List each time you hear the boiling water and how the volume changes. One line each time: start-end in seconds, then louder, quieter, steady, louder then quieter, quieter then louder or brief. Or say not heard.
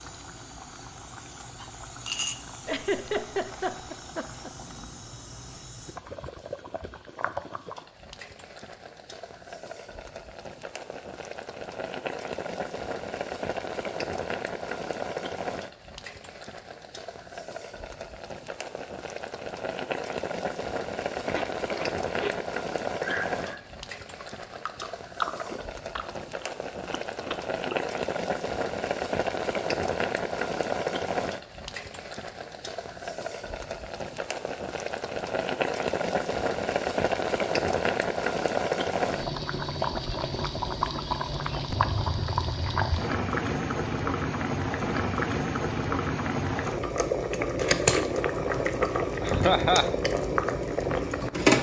0.0-51.5 louder.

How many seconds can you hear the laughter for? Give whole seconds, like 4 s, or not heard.
3 s.